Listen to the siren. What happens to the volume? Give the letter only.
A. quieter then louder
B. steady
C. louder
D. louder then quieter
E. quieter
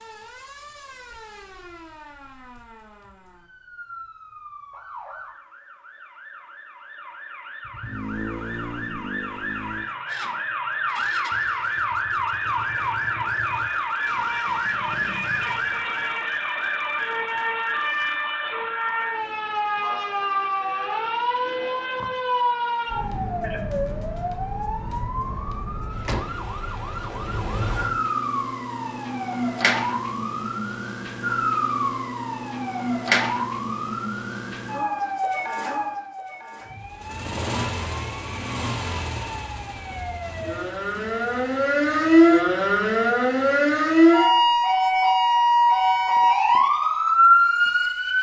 C.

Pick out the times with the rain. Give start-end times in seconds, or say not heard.
not heard.